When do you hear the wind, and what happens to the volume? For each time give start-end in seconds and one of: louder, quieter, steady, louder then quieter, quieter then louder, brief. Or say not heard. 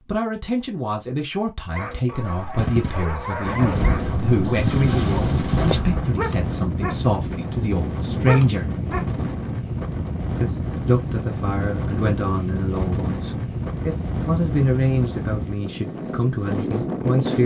3.4-17.4 steady.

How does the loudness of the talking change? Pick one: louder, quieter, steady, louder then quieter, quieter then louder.
steady.